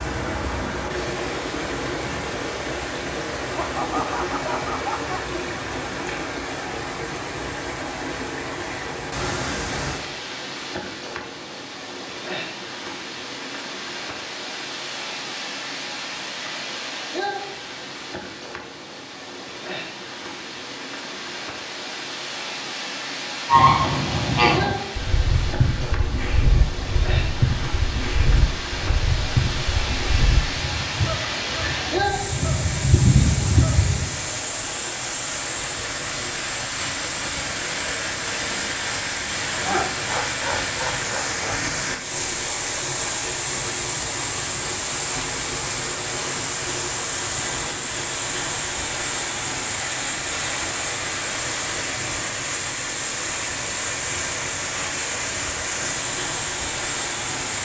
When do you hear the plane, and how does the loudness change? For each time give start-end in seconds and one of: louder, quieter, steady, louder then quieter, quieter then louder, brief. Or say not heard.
not heard.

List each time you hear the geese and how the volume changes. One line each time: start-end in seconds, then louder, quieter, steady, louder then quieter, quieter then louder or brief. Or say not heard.
23.4-34.2 quieter then louder.